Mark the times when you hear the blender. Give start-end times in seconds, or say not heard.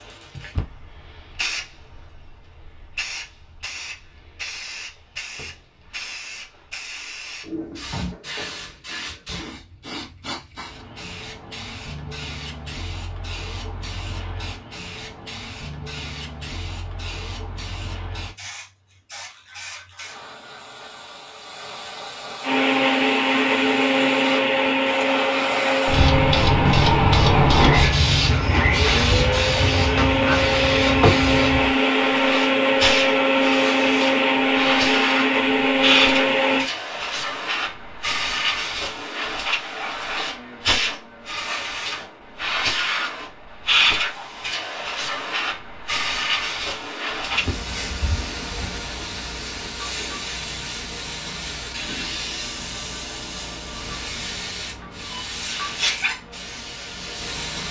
22.4-36.7.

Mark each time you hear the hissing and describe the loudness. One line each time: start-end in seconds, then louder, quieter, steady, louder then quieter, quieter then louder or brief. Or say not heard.
0.0-57.6 louder then quieter.